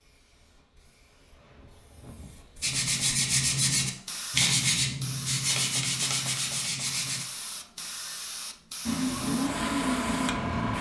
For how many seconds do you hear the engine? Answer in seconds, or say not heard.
2 s.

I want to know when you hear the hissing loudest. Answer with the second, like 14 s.
10 s.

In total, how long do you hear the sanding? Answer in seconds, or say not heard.
5 s.